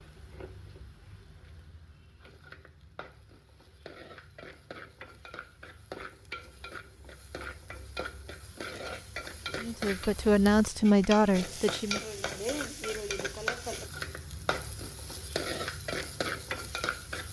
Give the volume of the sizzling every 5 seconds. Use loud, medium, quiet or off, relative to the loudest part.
quiet, medium, loud, loud.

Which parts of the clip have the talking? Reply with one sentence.
The talking can be heard from 9.6 to 12.0 s.